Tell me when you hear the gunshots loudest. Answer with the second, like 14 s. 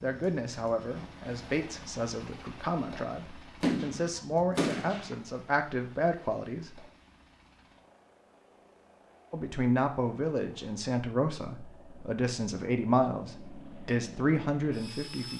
4 s.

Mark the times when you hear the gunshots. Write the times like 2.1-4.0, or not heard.
3.6-5.2.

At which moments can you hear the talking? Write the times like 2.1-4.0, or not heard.
0.0-6.8, 9.3-15.3.